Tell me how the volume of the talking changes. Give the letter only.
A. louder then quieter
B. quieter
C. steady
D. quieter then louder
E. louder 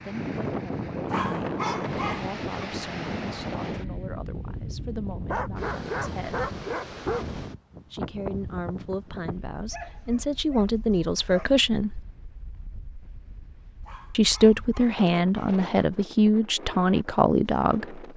E.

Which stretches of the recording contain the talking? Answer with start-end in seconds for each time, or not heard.
0.0-6.5, 7.9-12.0, 14.1-18.1.